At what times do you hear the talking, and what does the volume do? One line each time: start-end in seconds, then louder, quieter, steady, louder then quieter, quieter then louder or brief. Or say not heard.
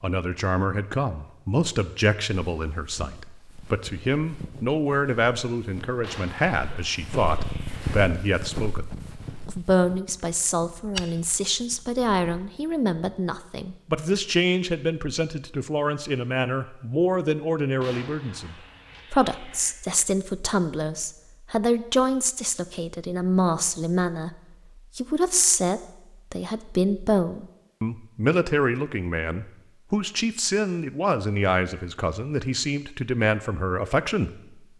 0.0-34.6 steady.